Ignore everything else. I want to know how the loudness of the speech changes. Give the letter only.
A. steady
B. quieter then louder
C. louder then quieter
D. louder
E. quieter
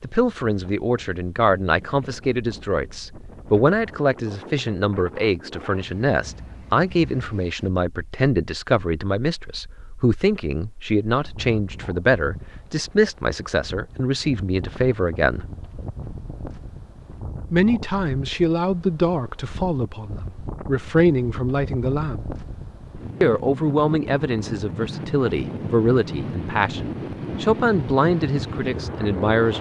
A.